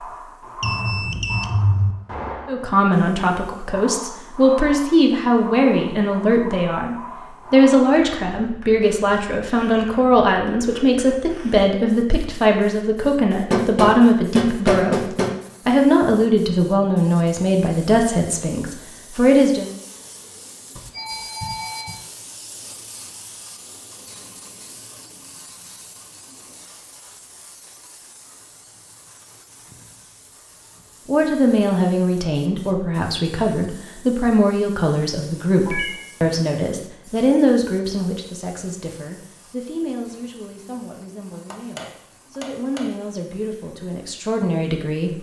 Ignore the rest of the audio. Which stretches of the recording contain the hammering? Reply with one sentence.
The hammering can be heard from 13.5 to 15.3 s and from 41.5 to 42.9 s.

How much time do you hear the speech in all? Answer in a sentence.
The speech can be heard for 31 seconds in total.